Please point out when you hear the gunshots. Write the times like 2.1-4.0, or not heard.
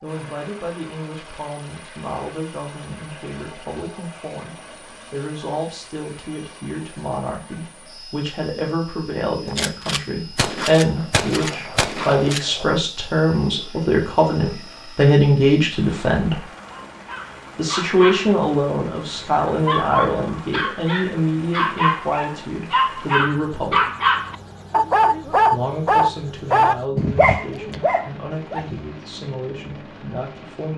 9.4-12.7.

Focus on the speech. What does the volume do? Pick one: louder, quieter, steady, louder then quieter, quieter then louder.
louder then quieter.